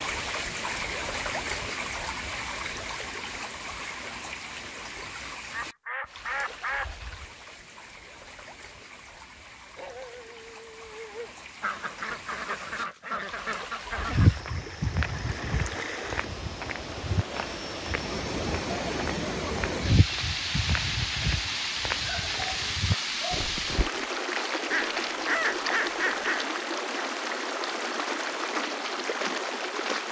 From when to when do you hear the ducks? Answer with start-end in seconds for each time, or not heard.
5.5-7.0, 11.6-14.4, 24.7-26.4.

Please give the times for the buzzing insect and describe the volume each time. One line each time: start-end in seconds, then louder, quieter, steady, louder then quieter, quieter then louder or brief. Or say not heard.
not heard.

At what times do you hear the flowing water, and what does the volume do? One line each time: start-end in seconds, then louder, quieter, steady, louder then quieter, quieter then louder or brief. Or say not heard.
0.0-30.0 quieter then louder.